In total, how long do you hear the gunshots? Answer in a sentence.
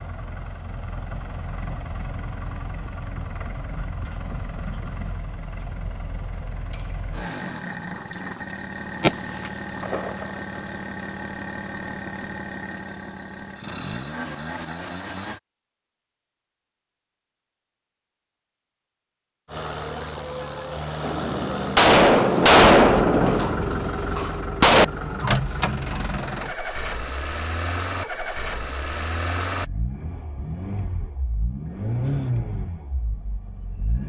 You can hear the gunshots for 5 seconds altogether.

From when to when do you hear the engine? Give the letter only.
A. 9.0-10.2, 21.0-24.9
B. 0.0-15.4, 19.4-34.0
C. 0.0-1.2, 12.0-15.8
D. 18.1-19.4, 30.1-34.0
B.